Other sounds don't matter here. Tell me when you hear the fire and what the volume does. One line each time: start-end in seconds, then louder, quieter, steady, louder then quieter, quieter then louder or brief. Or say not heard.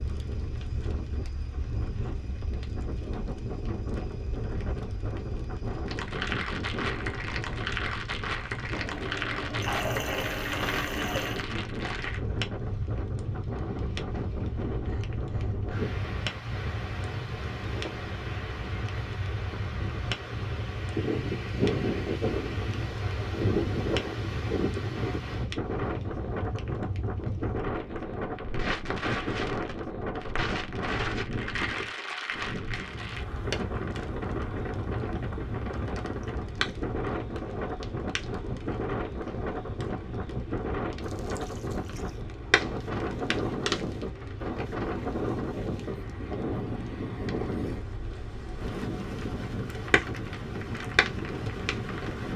0.0-52.1 steady.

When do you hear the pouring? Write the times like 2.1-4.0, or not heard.
8.7-11.4, 41.0-42.2.